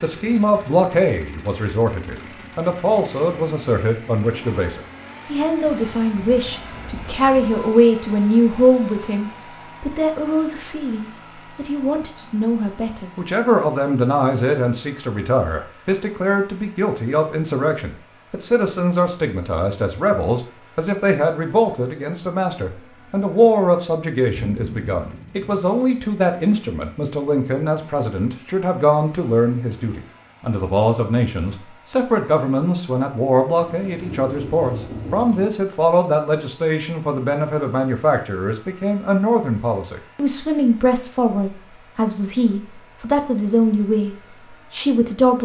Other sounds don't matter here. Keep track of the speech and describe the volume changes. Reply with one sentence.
The loudness of the speech stays about the same.